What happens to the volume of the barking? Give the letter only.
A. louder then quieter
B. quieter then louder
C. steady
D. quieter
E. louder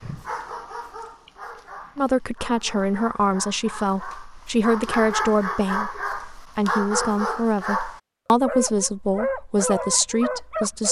E.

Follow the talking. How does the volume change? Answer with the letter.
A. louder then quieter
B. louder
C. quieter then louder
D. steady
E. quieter
D.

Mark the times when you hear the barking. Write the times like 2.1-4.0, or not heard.
0.0-10.8.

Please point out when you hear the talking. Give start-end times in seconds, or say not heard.
1.9-10.8.